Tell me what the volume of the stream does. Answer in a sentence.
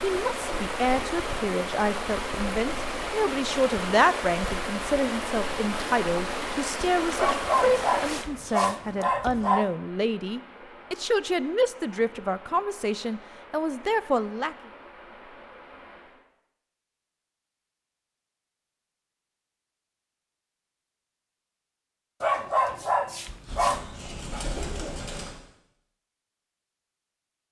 The volume of the stream goes down.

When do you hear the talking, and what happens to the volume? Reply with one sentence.
You can hear the talking from 0.0 to 14.6 s, at a steady volume.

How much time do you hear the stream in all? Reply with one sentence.
You can hear the stream for 16 seconds altogether.